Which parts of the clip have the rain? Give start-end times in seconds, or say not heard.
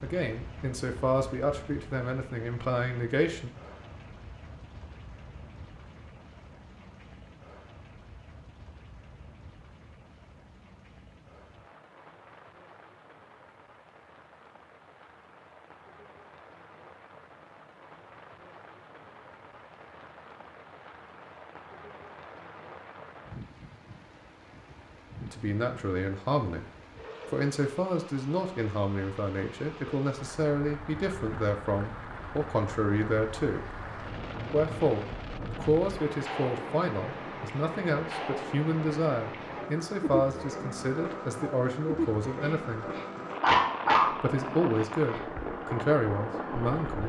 0.0-47.0.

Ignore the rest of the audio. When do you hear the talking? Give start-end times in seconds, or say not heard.
0.0-3.5, 25.3-26.6, 27.3-33.6, 34.5-42.9, 44.1-47.0.